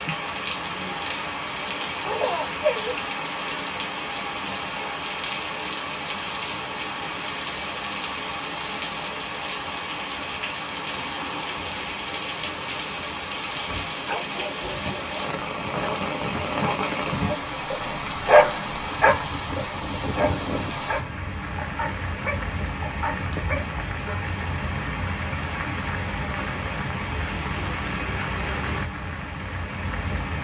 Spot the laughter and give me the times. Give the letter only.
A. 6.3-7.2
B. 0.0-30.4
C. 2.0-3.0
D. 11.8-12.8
C.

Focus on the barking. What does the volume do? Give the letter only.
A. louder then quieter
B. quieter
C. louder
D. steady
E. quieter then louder
A.